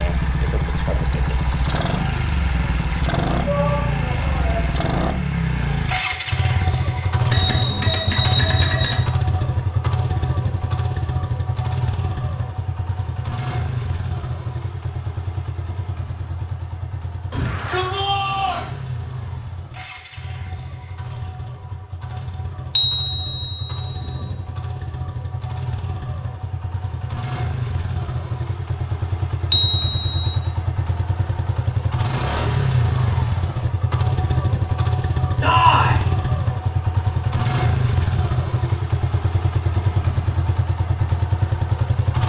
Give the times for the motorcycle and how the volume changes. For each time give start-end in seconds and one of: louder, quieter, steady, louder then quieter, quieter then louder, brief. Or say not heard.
0.0-42.2 quieter then louder.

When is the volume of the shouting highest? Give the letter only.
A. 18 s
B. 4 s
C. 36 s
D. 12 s
C.